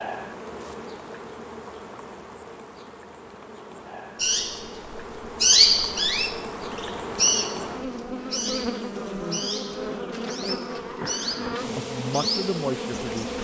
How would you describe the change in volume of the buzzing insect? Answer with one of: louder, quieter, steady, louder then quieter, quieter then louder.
louder.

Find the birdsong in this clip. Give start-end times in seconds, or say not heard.
4.2-13.3.